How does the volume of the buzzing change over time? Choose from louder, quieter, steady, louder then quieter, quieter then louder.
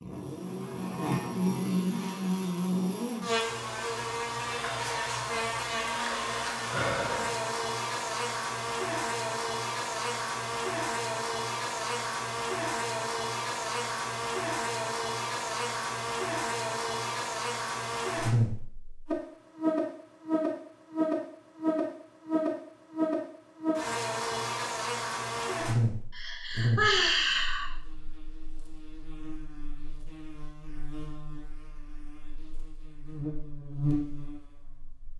quieter.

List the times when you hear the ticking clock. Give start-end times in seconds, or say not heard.
not heard.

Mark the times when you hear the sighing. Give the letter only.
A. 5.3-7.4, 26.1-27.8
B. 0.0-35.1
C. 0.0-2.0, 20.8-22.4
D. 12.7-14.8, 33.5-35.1
A.